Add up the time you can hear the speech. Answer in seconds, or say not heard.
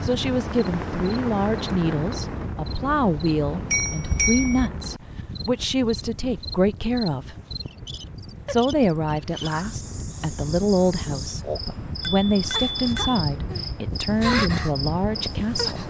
15 s.